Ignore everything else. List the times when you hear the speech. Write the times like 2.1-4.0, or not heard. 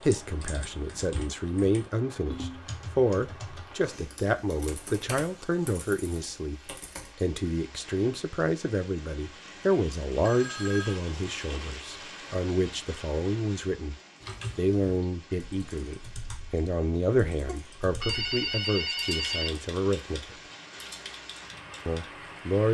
0.0-13.9, 14.6-20.4, 21.9-22.7.